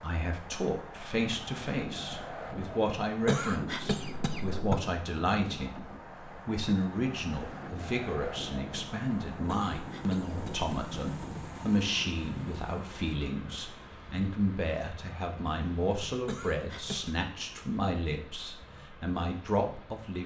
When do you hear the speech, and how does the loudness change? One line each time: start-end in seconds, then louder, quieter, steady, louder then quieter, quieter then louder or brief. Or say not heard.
0.0-20.2 steady.